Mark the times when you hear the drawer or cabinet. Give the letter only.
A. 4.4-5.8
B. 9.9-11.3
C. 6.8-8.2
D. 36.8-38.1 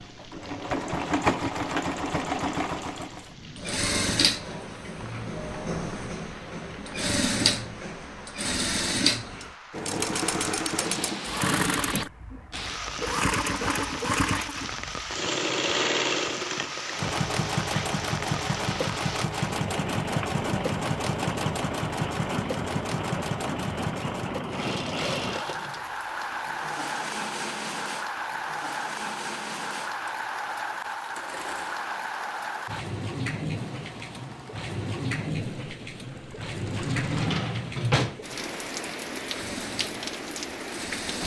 D.